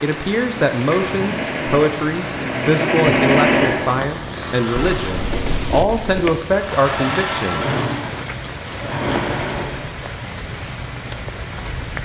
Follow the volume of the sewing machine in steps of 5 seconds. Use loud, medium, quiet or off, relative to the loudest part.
loud, loud, off.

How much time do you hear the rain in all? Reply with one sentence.
You can hear the rain for 12 seconds altogether.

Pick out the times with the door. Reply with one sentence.
The door can be heard from 4.8 to 6.3 s.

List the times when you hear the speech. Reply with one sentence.
You can hear the speech from 0.0 to 7.8 s.